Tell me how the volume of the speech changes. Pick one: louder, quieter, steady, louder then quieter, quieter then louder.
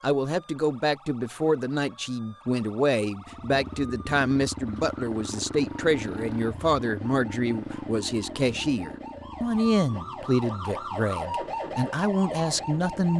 steady.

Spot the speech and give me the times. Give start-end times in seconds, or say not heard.
0.0-13.1.